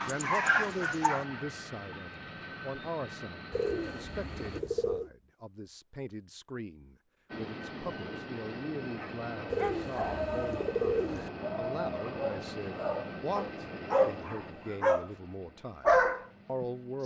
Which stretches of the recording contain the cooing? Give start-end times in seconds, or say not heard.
3.5-5.1, 9.5-11.3.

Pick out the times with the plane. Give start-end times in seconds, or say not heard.
0.2-4.6, 7.3-17.0.